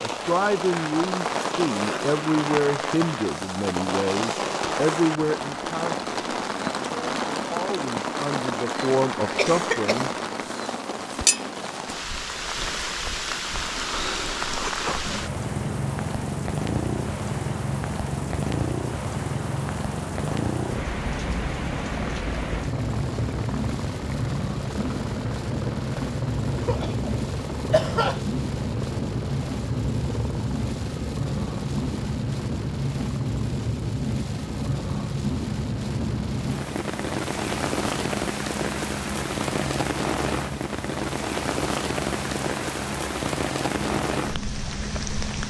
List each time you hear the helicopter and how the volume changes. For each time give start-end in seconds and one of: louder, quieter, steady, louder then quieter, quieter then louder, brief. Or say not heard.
15.0-45.4 steady.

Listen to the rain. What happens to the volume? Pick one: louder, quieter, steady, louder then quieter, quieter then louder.
steady.